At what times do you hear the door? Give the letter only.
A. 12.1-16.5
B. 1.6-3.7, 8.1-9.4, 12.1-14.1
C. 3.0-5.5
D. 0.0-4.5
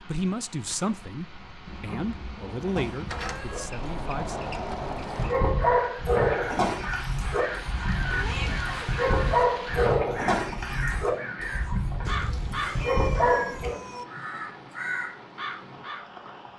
C.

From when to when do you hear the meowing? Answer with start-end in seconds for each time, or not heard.
1.6-3.7, 8.1-9.4, 12.1-14.1.